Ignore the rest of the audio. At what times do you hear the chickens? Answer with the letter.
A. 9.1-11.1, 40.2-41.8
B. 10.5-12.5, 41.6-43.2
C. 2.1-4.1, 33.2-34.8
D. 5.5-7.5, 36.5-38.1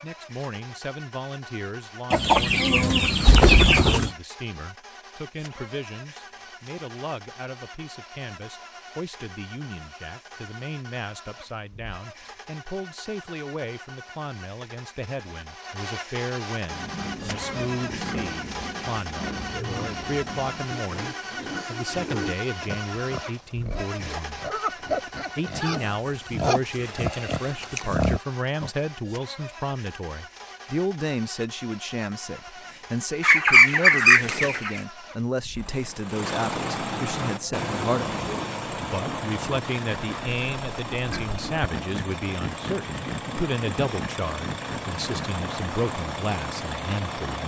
C.